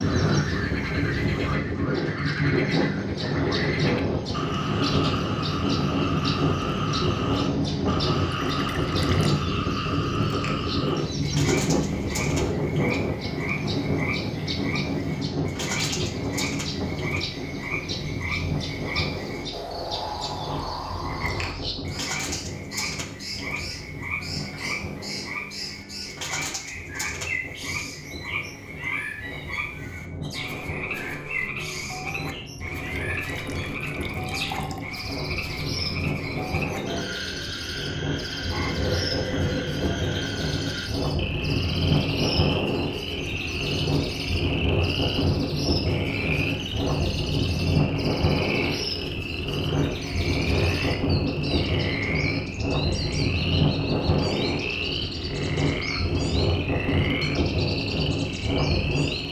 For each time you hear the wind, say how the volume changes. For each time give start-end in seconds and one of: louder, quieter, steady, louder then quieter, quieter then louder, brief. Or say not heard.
0.0-59.2 quieter then louder.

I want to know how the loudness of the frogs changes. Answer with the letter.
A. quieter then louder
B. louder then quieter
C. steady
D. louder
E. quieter
C.